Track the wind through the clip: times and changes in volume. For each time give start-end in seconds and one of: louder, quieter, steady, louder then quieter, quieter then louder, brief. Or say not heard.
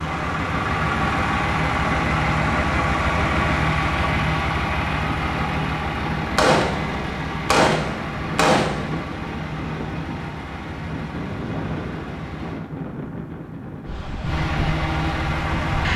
0.0-15.9 steady.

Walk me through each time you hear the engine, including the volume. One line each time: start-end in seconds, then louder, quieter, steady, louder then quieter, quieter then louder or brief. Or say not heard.
0.0-12.6 quieter
14.2-15.9 brief.